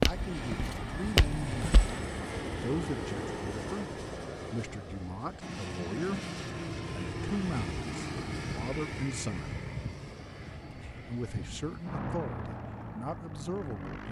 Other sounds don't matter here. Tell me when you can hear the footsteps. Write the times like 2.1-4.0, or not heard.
0.0-1.9.